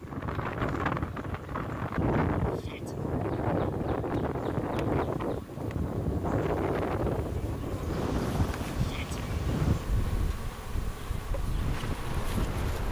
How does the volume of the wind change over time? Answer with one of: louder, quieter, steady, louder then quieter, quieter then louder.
quieter.